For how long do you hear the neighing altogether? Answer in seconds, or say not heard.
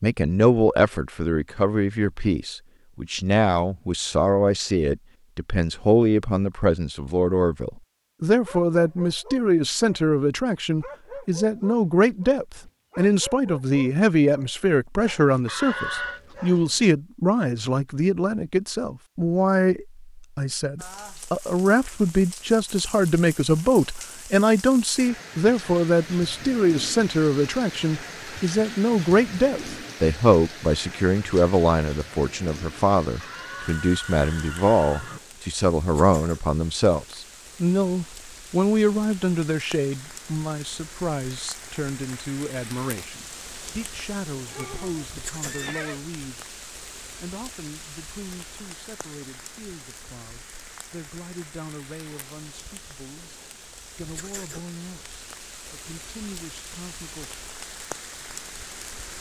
4 s.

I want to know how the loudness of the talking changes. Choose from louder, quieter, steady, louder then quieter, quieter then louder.
quieter.